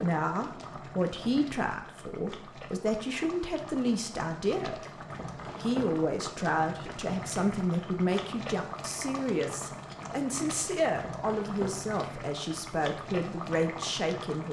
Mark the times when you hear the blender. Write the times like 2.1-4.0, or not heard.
not heard.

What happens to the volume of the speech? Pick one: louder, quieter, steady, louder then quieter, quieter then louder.
steady.